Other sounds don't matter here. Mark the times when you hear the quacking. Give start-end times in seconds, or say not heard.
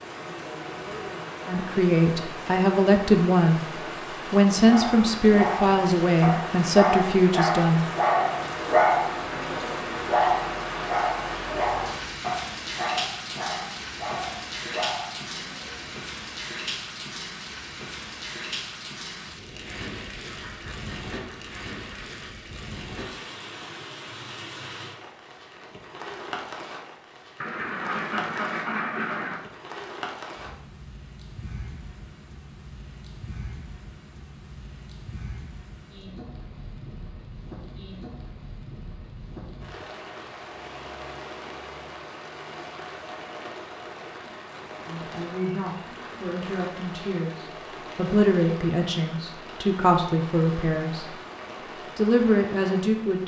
20.2-22.3, 27.4-29.4.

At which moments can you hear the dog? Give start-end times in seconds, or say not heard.
4.7-15.9.